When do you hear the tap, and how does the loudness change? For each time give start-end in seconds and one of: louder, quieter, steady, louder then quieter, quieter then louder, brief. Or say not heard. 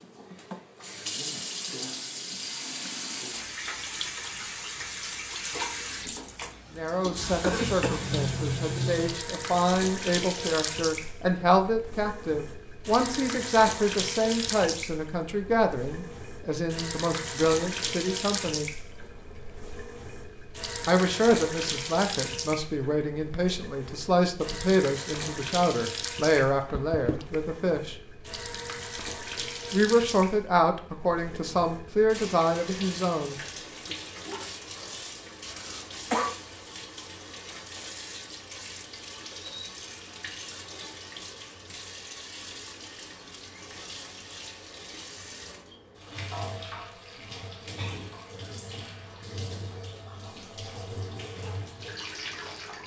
0.0-52.8 quieter.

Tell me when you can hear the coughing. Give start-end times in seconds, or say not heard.
7.4-8.2, 26.7-27.4, 35.5-36.4.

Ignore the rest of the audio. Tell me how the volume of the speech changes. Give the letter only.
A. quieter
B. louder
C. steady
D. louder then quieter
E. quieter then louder
C.